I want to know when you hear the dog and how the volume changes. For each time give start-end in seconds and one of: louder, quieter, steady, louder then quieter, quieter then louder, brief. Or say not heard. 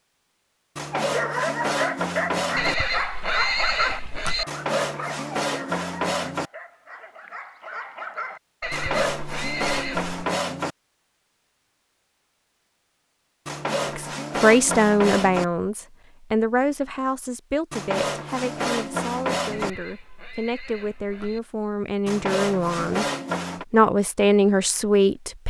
0.9-9.2 quieter then louder.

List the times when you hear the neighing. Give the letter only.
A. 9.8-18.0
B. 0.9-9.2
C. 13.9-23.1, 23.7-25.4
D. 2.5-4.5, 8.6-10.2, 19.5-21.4
D.